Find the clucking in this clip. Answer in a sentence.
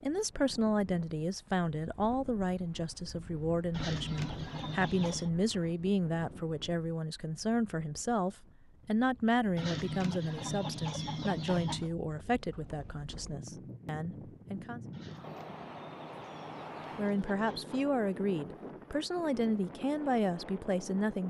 You can hear the clucking from 3.7 to 5.3 s, from 9.6 to 11.9 s and from 14.9 to 17.9 s.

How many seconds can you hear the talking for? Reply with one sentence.
The talking can be heard for 19 seconds in total.